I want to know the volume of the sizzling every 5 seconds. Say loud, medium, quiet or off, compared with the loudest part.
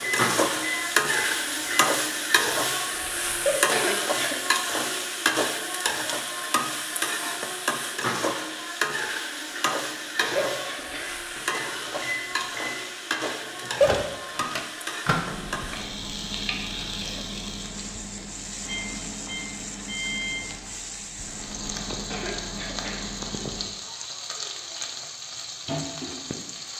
loud, loud, medium, medium, medium, medium.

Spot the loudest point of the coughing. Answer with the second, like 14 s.
4 s.